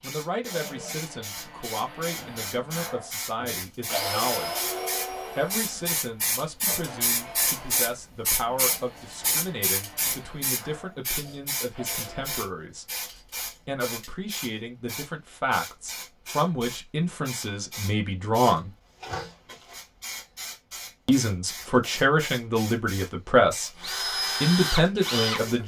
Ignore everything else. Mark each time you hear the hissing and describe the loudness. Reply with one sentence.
You can hear the hissing from 0.0 to 25.6 s, getting louder then quieter.